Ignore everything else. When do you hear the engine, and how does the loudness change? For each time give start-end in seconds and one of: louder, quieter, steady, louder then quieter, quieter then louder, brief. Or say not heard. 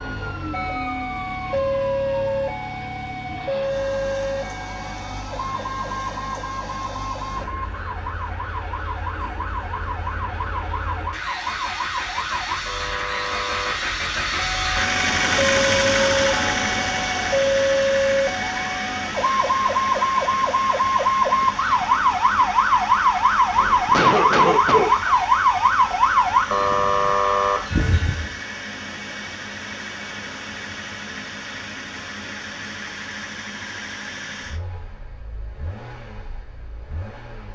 0.0-37.5 louder then quieter.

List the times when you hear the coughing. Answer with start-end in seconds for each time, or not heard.
23.9-24.9.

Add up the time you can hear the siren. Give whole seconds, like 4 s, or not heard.
28 s.